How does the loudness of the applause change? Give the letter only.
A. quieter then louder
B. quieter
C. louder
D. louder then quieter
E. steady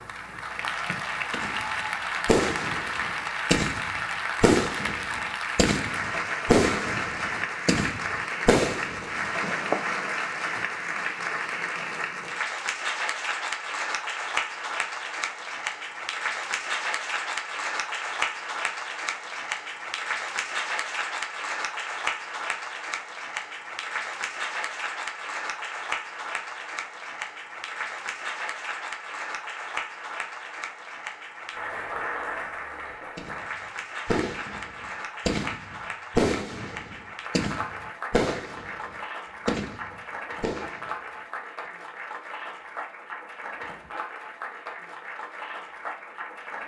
B.